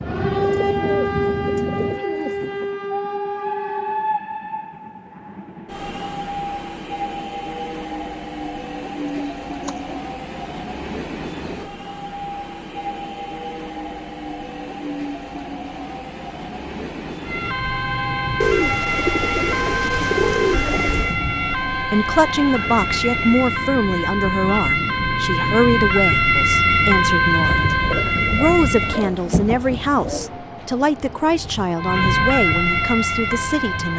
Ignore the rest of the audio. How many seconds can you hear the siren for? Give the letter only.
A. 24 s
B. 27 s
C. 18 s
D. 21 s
C.